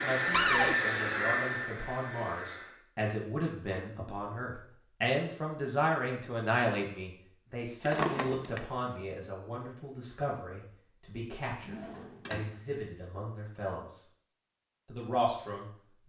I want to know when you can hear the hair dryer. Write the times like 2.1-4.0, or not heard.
0.0-2.8.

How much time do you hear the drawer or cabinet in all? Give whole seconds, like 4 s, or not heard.
2 s.